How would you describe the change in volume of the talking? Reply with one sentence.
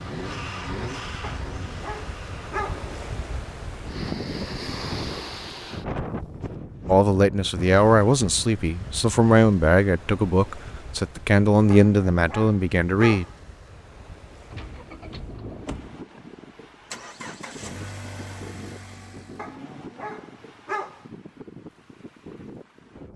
The loudness of the talking stays about the same.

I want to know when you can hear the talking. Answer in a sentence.
The talking can be heard from 6.8 to 13.2 s.